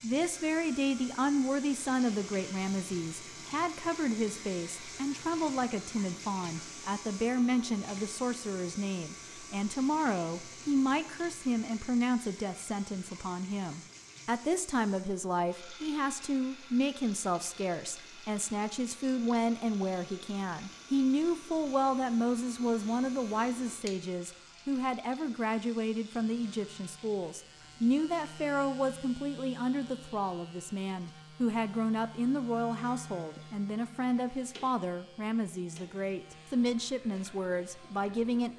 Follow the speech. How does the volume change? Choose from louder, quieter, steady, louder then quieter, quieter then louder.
steady.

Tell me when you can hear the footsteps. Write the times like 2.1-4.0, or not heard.
not heard.